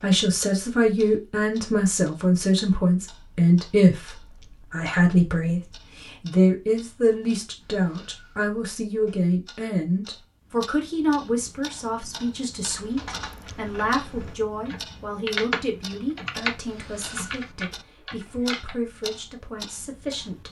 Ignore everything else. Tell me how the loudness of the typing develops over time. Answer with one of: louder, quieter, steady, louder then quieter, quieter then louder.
louder then quieter.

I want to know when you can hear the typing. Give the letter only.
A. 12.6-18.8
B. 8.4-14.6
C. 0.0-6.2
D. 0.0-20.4
A.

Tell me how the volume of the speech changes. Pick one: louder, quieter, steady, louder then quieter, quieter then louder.
quieter.